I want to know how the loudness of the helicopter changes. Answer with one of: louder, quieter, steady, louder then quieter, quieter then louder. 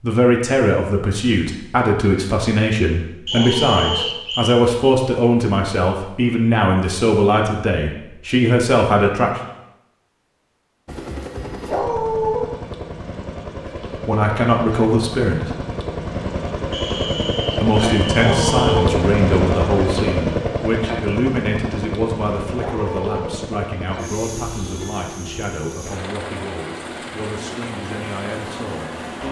louder then quieter.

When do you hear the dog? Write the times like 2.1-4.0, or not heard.
3.3-4.1, 11.7-12.4, 18.1-18.9, 22.6-23.4.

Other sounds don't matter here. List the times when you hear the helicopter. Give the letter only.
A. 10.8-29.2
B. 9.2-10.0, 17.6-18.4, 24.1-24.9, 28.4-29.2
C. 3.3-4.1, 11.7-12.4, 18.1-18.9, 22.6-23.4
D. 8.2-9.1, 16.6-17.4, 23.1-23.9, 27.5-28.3
A.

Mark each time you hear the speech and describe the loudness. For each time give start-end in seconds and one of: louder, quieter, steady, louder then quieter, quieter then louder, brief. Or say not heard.
0.0-9.4 steady
13.8-15.6 brief
17.6-29.2 quieter.